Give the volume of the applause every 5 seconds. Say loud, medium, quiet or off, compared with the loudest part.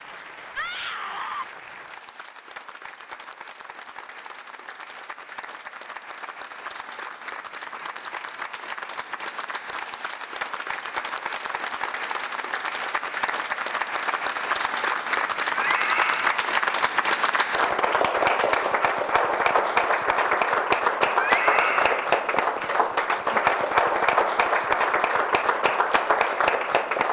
quiet, quiet, medium, loud, loud, loud.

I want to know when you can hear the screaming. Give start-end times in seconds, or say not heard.
0.6-1.4, 15.6-16.4, 21.1-22.0.